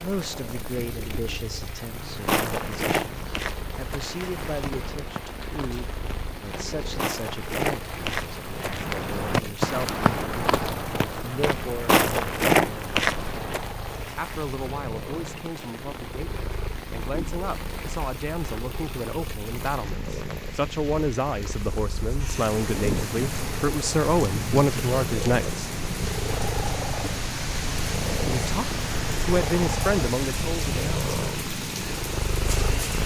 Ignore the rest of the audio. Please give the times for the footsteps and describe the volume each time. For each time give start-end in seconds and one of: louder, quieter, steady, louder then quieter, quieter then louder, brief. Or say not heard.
2.2-13.7 quieter then louder.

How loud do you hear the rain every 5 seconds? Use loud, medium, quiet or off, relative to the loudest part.
medium, medium, medium, medium, loud, loud, loud.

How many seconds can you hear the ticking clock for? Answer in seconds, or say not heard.
not heard.